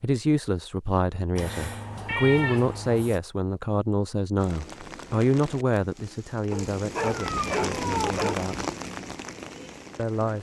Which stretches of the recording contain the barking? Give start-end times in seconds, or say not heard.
6.5-8.3.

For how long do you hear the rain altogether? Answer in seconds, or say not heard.
6 s.